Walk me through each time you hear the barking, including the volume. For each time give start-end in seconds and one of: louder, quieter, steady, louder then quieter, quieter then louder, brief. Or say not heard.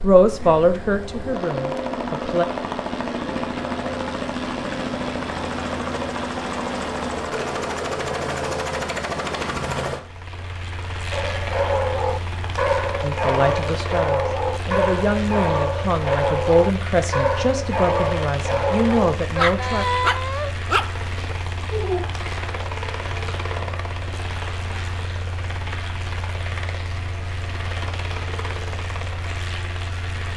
11.1-22.1 steady.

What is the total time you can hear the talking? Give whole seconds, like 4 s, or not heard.
9 s.